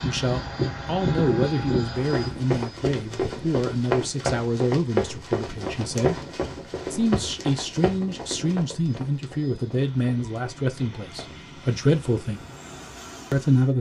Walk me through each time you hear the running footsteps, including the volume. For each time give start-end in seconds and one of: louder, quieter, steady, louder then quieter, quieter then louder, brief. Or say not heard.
1.9-11.4 quieter.